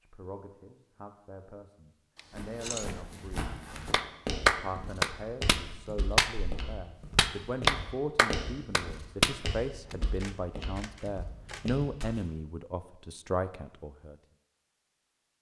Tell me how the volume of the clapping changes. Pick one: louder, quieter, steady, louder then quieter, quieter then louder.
quieter then louder.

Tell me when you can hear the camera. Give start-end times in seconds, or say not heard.
2.1-3.0, 10.2-11.8.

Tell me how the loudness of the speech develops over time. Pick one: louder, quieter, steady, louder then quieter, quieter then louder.
louder.